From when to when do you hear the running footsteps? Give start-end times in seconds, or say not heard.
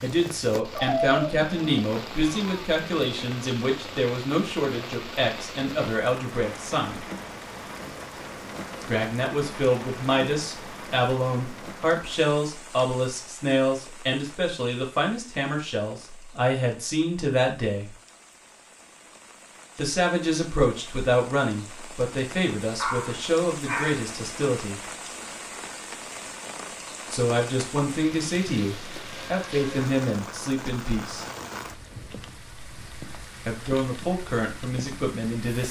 not heard.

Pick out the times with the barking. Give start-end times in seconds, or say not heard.
0.7-1.9, 22.8-24.0.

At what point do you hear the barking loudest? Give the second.
1 s.